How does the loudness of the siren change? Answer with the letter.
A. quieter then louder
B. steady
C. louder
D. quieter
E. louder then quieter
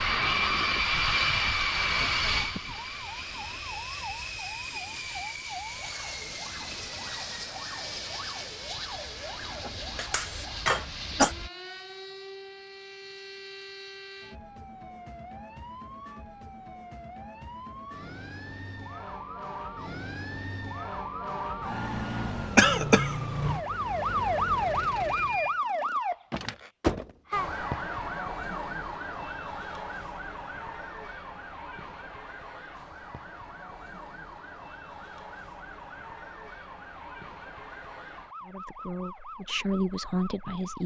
E.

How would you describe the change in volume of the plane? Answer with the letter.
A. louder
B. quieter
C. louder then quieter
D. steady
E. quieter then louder
B.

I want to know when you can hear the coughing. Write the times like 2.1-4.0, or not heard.
9.9-11.3, 22.6-23.1.